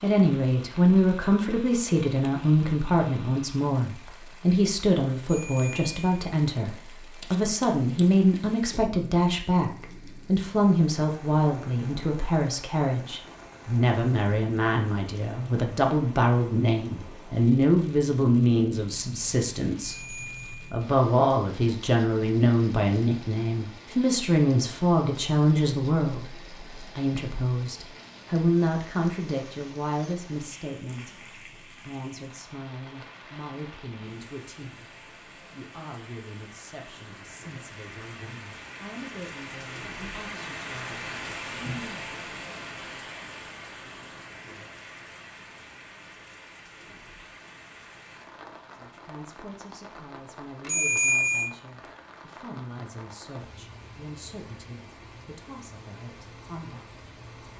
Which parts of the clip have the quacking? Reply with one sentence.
The quacking can't be heard in this clip.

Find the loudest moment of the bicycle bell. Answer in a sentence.
The loudest moment of the bicycle bell is at 51 seconds.